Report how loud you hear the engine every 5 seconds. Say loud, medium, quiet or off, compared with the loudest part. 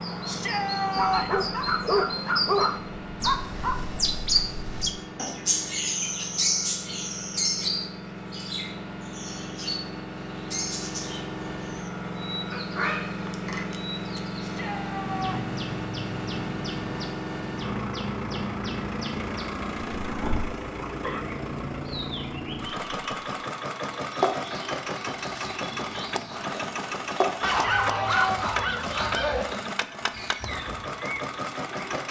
medium, medium, loud, loud, loud, loud, loud.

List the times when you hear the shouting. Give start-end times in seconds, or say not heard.
0.2-1.5, 14.4-15.4, 27.4-28.4.